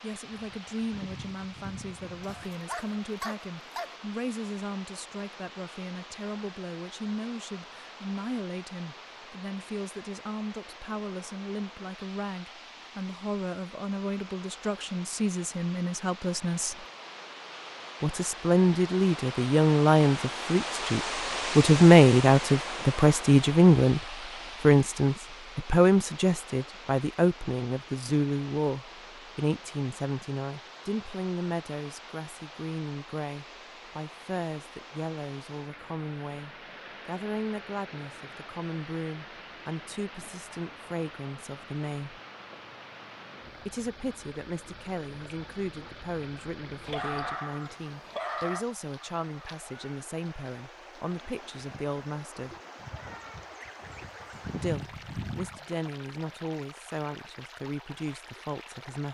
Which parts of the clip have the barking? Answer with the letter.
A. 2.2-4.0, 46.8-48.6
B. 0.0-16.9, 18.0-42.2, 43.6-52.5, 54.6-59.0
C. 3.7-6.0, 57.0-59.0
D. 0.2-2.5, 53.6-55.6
A.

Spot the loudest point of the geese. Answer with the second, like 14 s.
55 s.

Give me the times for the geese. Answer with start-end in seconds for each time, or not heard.
0.2-2.5, 53.6-55.6.